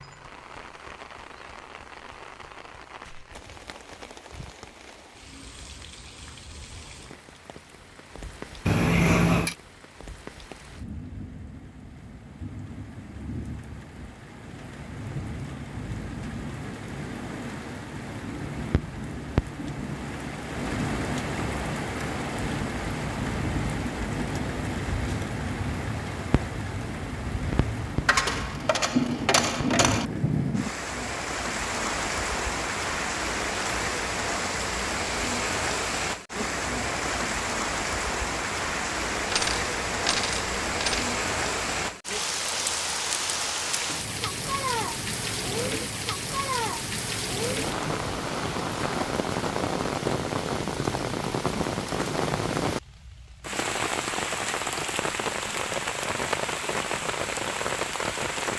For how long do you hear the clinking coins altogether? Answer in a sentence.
The clinking coins can be heard for 5 seconds in total.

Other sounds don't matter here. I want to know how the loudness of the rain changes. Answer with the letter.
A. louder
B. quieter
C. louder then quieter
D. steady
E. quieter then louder
A.